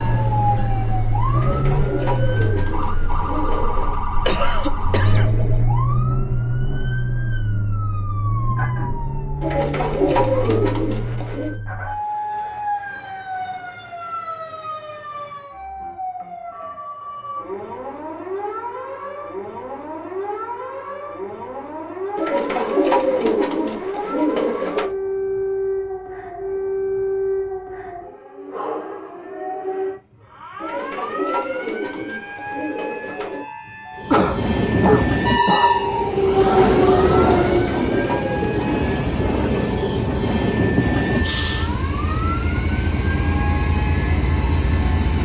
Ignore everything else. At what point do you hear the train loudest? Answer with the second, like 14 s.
37 s.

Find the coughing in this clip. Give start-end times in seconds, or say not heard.
4.2-5.3, 34.1-35.7.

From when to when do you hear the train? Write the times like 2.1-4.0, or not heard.
0.0-5.6, 34.0-45.1.